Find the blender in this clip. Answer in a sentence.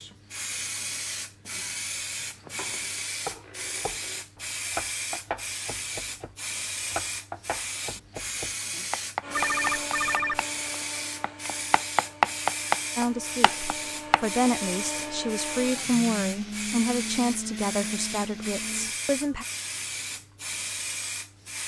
The blender can be heard from 9.2 to 18.9 s.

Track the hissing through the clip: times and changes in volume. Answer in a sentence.
The hissing can be heard from 0.0 to 21.6 s, at a steady volume.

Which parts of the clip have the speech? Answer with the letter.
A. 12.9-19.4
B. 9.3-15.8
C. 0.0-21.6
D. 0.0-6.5
A.